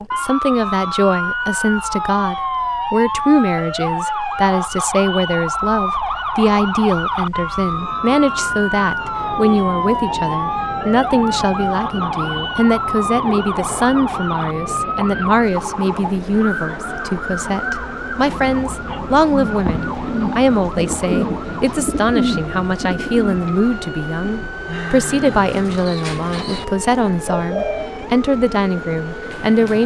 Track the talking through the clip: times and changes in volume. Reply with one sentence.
The talking can be heard from 0.1 to 29.8 s, at a steady volume.